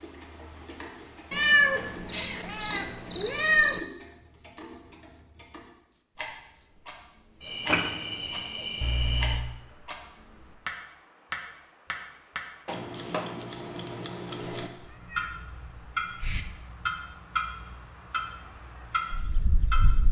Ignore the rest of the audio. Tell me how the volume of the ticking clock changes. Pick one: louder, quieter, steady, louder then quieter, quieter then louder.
louder.